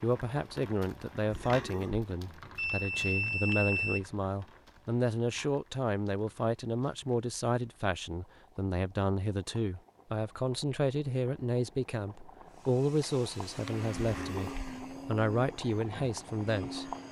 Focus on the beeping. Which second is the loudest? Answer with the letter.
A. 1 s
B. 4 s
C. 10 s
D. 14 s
B.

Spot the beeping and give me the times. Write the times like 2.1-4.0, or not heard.
2.5-4.0, 13.0-13.7.